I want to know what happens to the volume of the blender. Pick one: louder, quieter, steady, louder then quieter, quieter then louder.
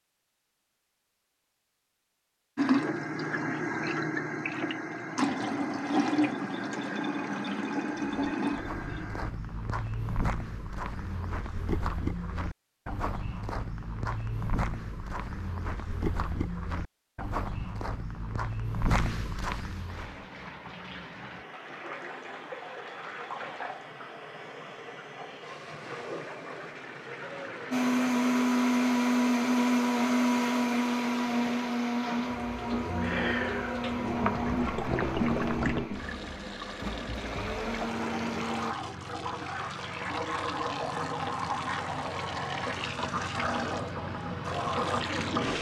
quieter.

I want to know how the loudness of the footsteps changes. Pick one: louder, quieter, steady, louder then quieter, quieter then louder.
steady.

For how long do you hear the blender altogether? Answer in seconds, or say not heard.
11 s.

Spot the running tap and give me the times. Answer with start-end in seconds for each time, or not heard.
2.5-9.3, 19.9-45.5.